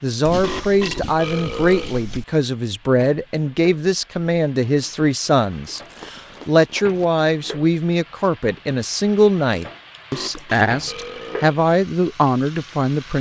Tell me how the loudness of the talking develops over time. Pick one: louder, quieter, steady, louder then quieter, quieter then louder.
steady.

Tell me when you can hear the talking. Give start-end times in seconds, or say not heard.
0.0-13.1.